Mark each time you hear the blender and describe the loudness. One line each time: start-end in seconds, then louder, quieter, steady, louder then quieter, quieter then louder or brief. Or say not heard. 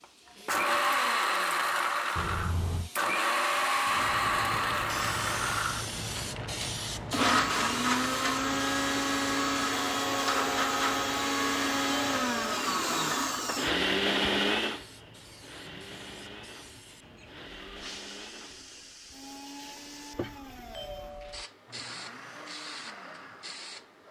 0.0-24.0 quieter.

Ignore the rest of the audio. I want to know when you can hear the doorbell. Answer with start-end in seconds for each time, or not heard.
2.1-2.9, 11.8-12.3, 20.4-21.5.